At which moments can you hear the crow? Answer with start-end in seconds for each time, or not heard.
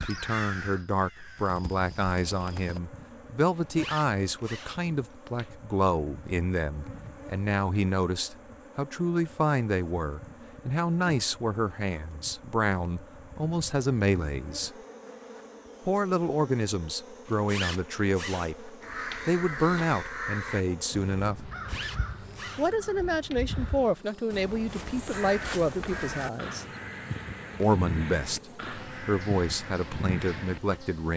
0.0-2.8, 18.8-30.8.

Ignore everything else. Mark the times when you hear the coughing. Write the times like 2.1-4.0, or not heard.
not heard.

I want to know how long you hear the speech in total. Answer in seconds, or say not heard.
28 s.